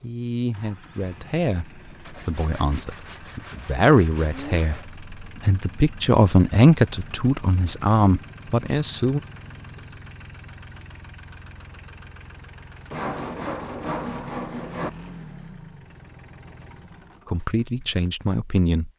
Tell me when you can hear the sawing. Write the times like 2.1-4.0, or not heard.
2.0-4.9, 12.9-14.9.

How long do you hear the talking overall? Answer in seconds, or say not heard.
11 s.